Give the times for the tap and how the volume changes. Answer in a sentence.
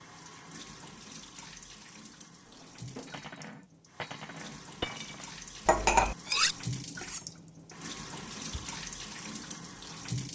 The tap can be heard from 0.0 to 10.3 s, getting louder.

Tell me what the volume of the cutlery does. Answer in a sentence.
The loudness of the cutlery goes up, then down.